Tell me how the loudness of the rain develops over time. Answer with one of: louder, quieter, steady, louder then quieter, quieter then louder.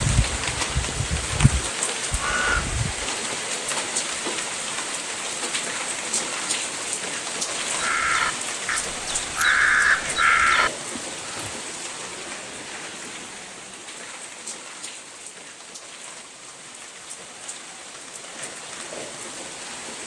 quieter.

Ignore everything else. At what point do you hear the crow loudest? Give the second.
10 s.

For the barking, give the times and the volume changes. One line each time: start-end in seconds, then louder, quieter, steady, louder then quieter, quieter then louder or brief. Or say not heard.
not heard.